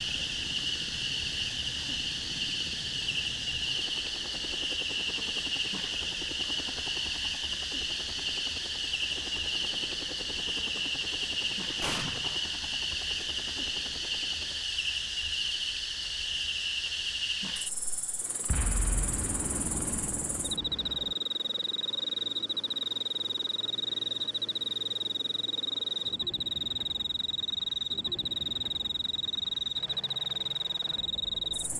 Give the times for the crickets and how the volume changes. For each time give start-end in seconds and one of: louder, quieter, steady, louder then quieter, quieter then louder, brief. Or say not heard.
0.0-31.7 steady.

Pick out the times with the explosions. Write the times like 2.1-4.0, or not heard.
11.8-12.4, 18.4-21.1.